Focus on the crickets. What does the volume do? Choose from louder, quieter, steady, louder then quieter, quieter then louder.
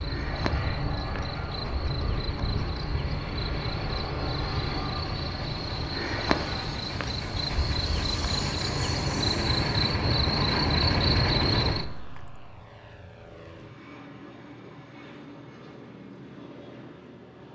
louder.